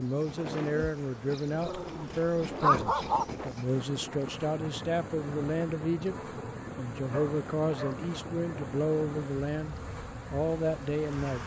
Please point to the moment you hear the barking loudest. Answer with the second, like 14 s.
3 s.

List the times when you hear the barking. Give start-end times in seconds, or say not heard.
1.6-3.2, 6.0-8.1.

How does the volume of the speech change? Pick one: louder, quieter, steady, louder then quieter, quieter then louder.
steady.